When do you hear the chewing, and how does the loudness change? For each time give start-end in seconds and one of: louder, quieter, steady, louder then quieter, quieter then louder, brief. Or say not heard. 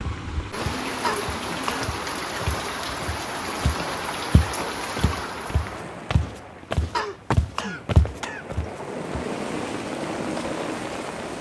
not heard.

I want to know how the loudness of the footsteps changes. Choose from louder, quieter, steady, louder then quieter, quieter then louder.
louder.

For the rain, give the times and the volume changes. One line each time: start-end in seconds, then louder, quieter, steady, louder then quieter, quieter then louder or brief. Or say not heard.
0.0-11.3 quieter then louder.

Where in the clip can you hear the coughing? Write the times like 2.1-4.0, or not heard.
1.0-1.9, 6.9-8.4.